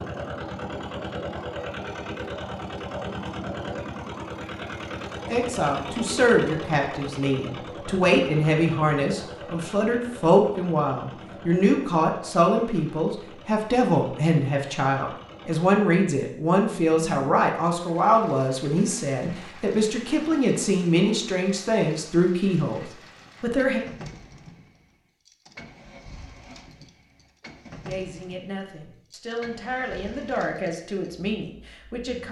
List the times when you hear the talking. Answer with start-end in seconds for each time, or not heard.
5.2-23.8, 27.9-32.2.